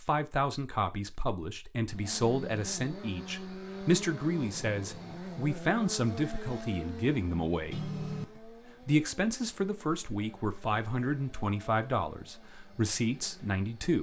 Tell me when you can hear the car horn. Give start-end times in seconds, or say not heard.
7.7-8.4.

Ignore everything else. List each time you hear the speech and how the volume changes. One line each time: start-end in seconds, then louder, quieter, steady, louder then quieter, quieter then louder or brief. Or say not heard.
0.0-13.9 steady.